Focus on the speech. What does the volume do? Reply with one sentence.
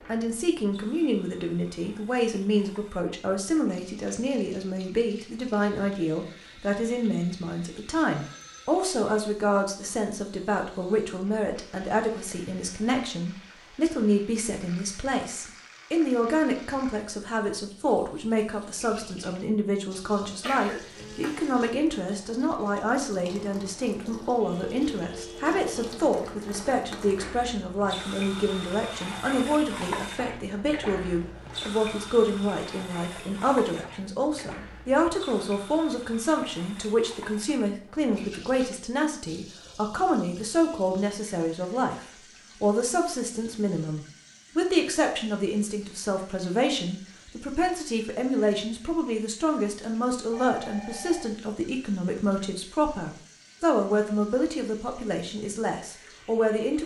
The loudness of the speech stays about the same.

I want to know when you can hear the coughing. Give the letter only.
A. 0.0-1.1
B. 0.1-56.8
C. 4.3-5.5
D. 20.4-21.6
D.